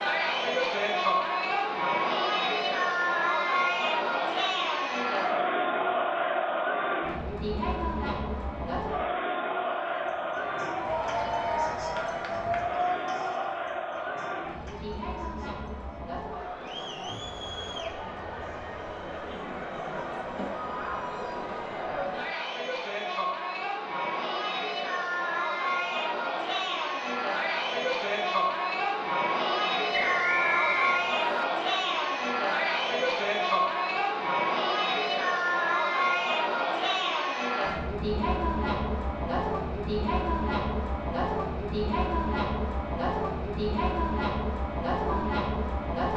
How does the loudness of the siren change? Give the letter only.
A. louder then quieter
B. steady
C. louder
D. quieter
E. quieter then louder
D.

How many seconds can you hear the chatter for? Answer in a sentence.
The chatter can be heard for 46 seconds in total.